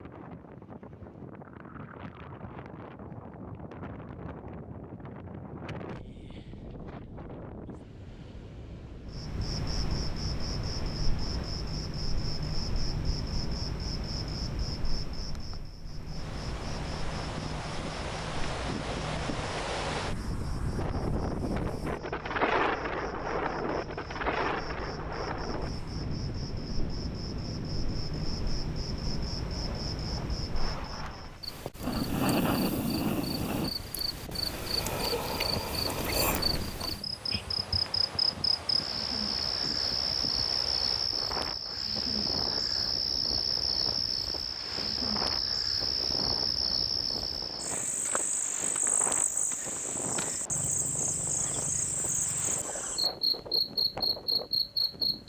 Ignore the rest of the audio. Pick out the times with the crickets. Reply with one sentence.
You can hear the crickets from 9.1 to 55.2 s.